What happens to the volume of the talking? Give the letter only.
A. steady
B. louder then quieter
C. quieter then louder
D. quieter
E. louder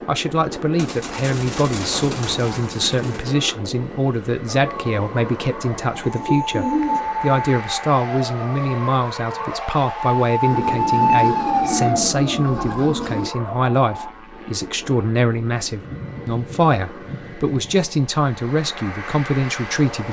A.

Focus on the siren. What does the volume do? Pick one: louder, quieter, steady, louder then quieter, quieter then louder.
louder then quieter.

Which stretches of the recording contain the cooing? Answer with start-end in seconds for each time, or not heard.
0.8-3.4, 6.0-7.3, 10.5-13.3, 15.8-17.9.